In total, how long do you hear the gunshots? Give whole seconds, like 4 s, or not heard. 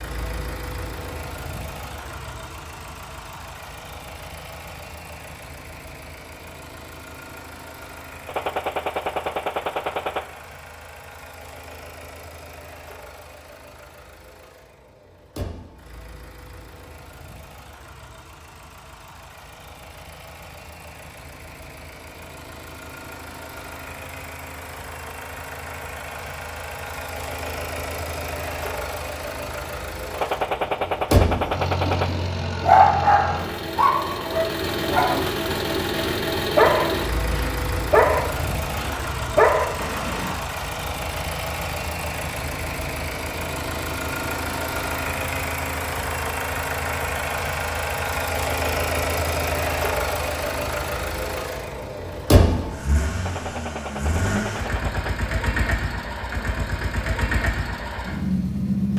6 s.